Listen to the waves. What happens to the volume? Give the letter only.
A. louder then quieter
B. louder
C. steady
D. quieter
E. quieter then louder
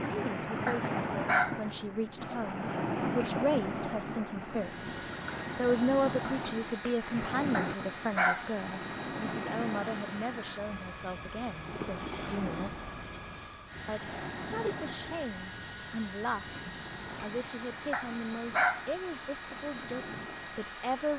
D.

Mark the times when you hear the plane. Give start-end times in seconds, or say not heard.
4.4-21.1.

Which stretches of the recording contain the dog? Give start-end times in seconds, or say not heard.
0.7-1.6, 7.5-8.5, 17.9-18.9.